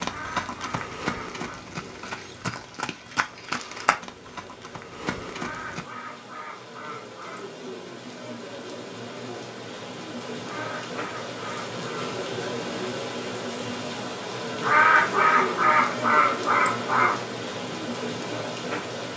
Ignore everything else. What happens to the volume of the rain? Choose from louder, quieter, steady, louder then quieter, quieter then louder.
louder.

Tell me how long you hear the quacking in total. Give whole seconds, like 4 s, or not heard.
8 s.